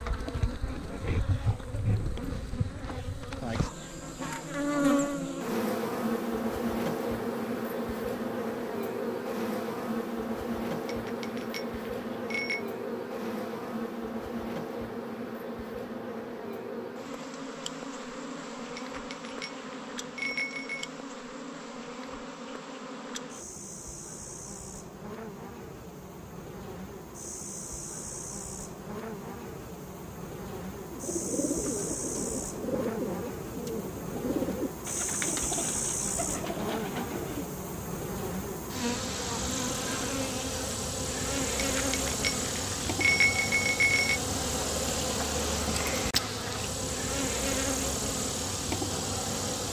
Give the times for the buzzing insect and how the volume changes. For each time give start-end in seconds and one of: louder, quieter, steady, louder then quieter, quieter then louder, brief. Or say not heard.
0.0-49.6 quieter then louder.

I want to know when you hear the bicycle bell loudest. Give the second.
43 s.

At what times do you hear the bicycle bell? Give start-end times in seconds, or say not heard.
10.8-12.7, 18.8-20.9, 41.8-44.2.